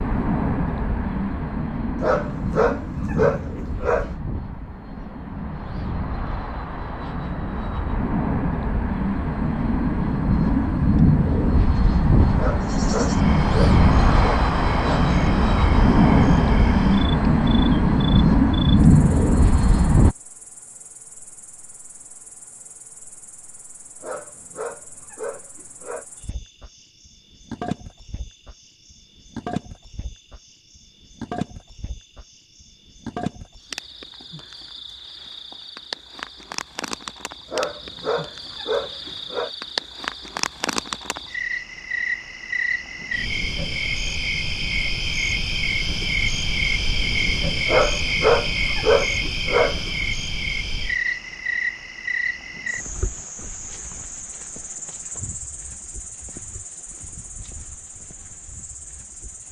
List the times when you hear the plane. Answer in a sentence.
The plane can be heard from 0.0 to 20.1 s.